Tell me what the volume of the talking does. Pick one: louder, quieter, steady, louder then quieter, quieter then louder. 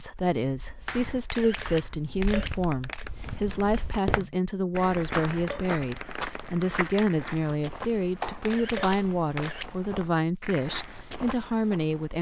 steady.